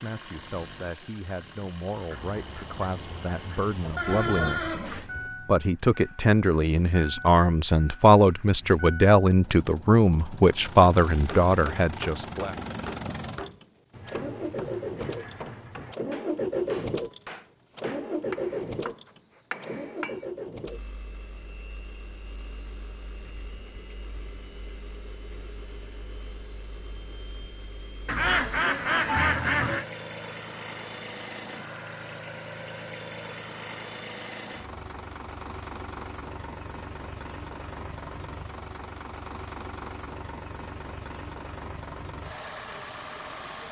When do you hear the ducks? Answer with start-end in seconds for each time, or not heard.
2.1-4.8, 28.1-29.9.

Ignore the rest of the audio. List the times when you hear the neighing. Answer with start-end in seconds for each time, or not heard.
4.0-5.3.